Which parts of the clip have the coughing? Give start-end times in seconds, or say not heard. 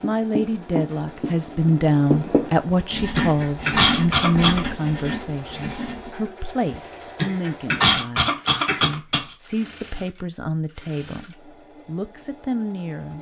2.7-4.6, 6.7-9.2.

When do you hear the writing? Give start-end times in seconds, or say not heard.
0.0-6.1.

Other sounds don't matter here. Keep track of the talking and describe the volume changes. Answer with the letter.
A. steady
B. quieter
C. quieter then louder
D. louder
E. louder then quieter
B.